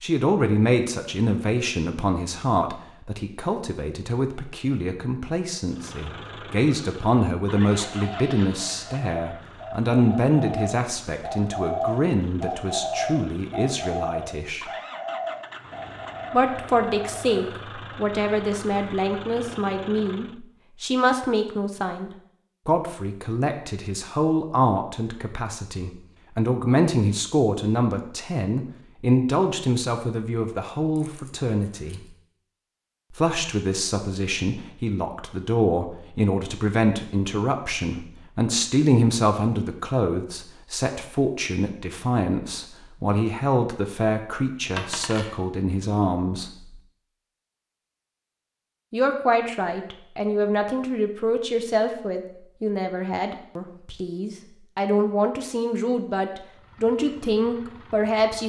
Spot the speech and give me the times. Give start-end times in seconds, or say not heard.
0.0-14.7, 16.3-32.0, 33.1-46.8, 48.9-58.4.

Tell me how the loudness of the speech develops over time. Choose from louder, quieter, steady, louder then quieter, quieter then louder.
steady.